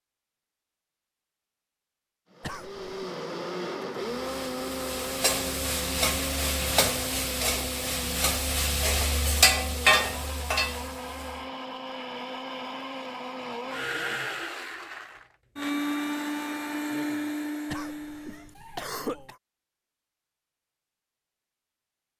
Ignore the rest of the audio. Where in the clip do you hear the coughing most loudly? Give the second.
19 s.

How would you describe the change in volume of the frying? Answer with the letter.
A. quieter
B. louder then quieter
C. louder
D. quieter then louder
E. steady
C.